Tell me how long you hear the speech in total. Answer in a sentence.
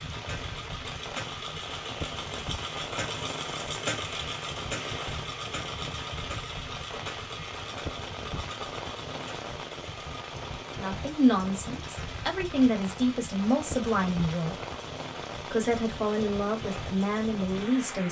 You can hear the speech for 6 seconds altogether.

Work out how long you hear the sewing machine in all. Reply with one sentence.
The sewing machine can be heard for 18 seconds in total.